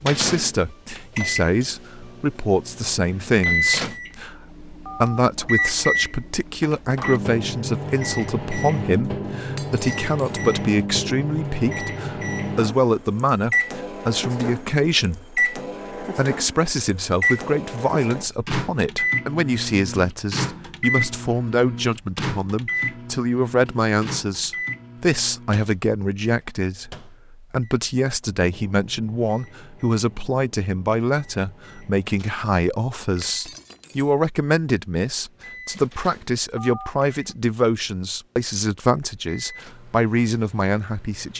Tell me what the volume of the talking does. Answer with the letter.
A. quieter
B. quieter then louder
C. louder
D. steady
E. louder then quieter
D.